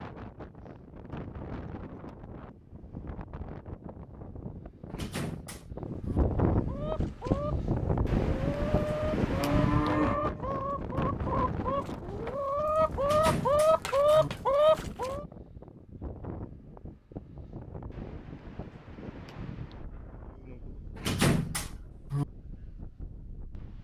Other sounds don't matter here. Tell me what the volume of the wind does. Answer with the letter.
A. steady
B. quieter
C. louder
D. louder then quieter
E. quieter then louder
D.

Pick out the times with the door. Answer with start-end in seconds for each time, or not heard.
4.9-6.2, 13.0-14.3, 20.9-22.2.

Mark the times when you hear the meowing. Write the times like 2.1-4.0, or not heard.
not heard.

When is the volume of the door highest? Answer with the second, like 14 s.
21 s.